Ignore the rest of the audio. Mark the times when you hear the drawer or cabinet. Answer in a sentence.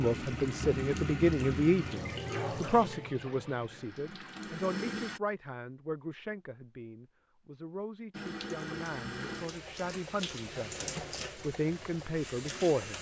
You can't hear the drawer or cabinet here.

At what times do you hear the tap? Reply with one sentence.
The tap can be heard from 0.0 to 5.2 s and from 8.1 to 12.9 s.